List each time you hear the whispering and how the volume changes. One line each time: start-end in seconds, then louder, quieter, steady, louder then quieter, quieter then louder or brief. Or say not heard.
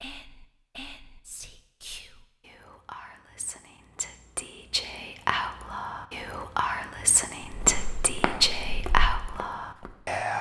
0.0-10.3 louder.